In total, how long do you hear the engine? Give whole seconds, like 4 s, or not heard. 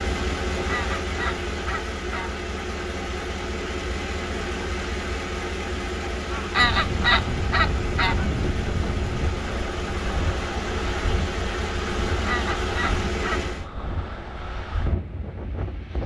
14 s.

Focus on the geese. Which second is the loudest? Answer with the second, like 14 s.
7 s.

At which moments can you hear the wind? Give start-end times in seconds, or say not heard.
6.5-16.0.